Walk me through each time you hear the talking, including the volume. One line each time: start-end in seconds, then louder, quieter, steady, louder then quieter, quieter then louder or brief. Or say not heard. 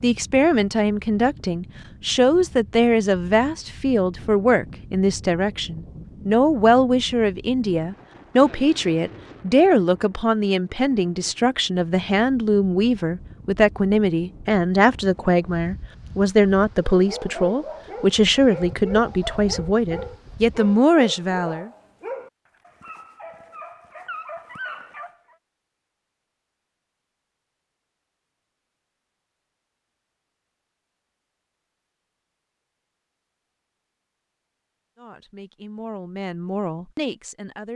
0.0-21.7 steady
35.0-37.7 brief.